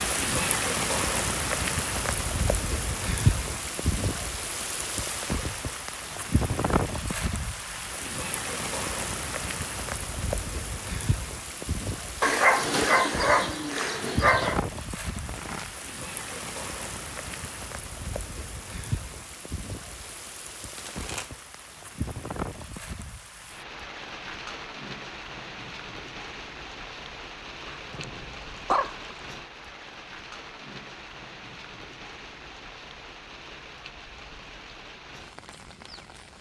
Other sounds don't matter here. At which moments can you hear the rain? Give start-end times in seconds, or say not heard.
0.0-36.3.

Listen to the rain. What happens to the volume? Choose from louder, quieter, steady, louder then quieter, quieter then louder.
quieter.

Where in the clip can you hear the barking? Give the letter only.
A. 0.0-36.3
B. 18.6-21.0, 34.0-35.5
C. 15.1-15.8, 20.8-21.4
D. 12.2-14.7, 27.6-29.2
D.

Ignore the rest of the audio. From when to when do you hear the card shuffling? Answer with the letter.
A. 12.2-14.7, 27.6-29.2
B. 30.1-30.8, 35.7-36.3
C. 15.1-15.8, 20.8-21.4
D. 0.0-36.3
C.